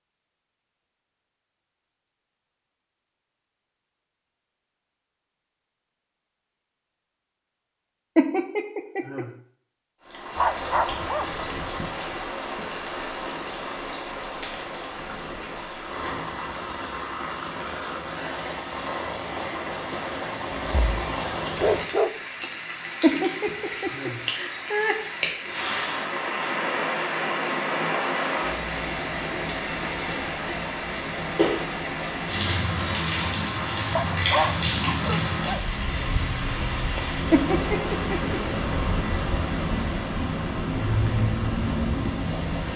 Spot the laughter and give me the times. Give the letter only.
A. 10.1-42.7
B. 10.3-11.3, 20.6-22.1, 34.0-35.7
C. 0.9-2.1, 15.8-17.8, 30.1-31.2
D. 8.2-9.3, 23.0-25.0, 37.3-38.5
D.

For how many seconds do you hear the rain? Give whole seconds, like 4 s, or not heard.
33 s.